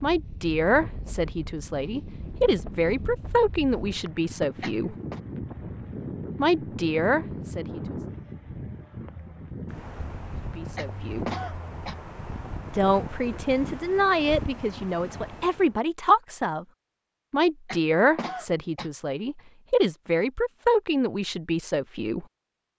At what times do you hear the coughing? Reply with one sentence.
The coughing can be heard from 4.6 to 5.2 s, from 10.8 to 11.9 s and from 17.6 to 18.9 s.